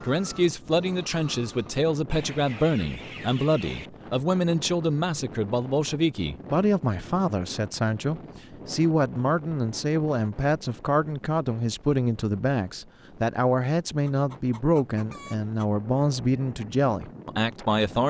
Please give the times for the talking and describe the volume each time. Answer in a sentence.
You can hear the talking from 0.0 to 18.0 s, at a steady volume.